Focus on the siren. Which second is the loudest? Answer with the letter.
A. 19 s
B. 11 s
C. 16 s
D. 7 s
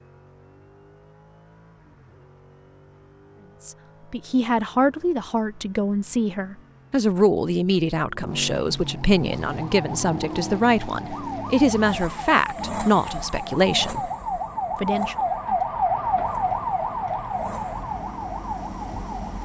C.